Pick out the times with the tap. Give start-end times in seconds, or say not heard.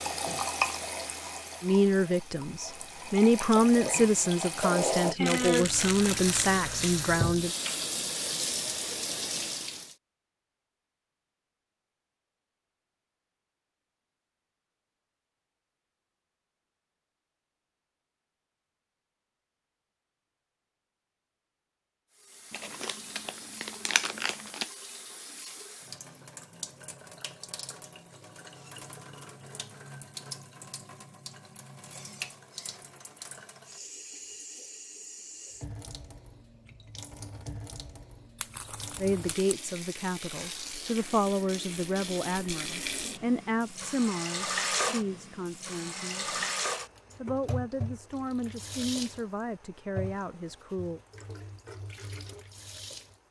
0.0-9.9, 22.1-53.2.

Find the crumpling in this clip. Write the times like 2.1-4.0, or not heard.
5.2-6.5, 22.5-24.6, 38.4-39.5.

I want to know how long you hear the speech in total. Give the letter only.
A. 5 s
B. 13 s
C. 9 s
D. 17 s
D.